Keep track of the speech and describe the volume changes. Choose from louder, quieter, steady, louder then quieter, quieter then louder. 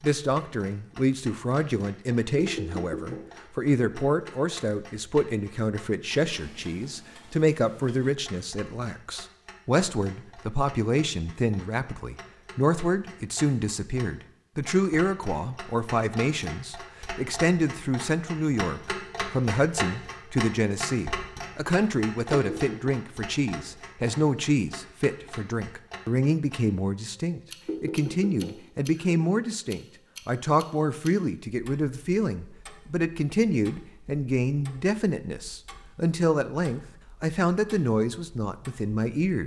steady.